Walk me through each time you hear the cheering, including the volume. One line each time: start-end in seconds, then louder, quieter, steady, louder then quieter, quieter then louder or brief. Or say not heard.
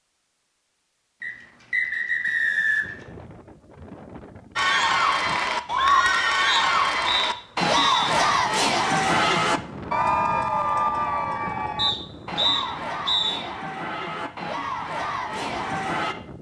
4.5-16.1 quieter.